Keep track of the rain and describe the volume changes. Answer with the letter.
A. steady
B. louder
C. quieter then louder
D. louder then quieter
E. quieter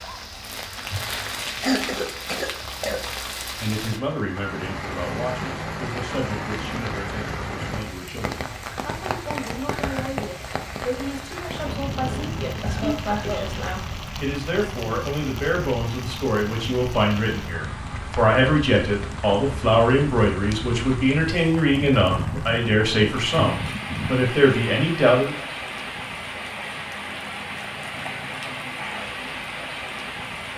A.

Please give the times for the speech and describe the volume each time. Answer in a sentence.
You can hear the speech from 3.6 to 25.4 s, getting louder.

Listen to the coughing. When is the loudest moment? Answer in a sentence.
The volume of the coughing peaks at 2 seconds.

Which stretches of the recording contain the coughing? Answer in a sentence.
You can hear the coughing from 1.6 to 3.1 s, from 12.6 to 13.6 s and from 22.1 to 22.6 s.